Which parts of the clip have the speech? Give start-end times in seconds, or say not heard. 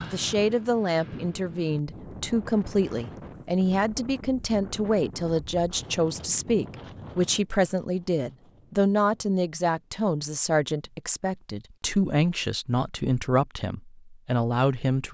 0.0-15.0.